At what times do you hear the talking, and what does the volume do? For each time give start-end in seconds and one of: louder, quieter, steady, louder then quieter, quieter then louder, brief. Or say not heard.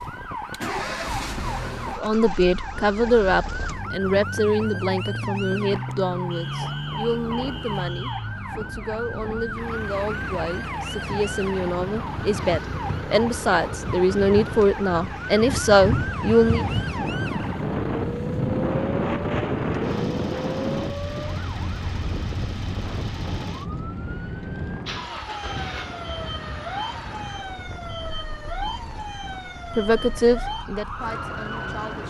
1.9-16.6 quieter then louder
29.8-32.0 brief.